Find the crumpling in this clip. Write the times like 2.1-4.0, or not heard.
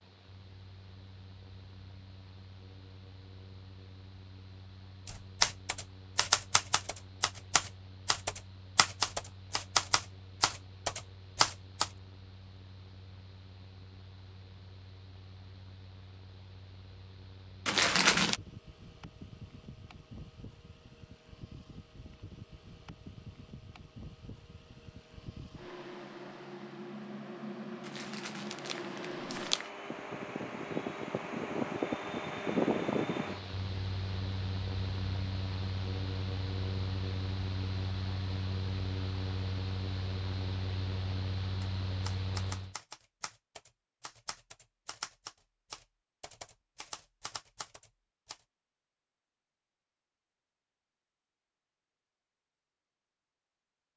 17.6-18.4, 27.9-29.7.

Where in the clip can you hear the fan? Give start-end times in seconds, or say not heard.
0.0-42.8.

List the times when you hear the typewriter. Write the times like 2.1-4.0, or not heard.
5.0-11.9, 41.6-48.4.